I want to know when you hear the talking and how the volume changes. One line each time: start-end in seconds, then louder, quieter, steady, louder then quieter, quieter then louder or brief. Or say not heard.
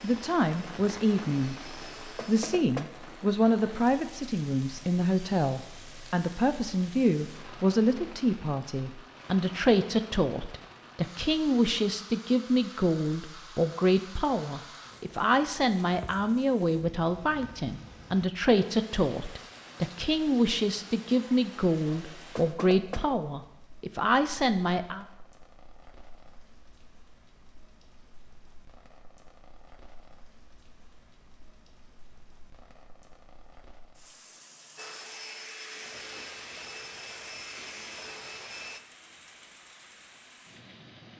0.0-25.1 steady.